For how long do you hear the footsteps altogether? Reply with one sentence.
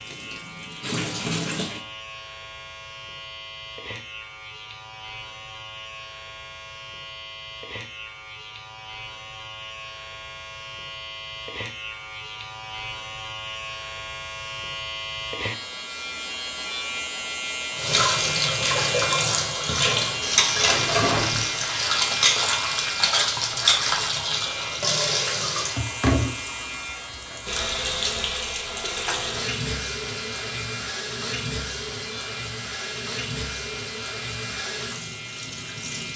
The footsteps can't be heard in this clip.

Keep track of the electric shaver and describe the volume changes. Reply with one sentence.
The volume of the electric shaver goes up, then down.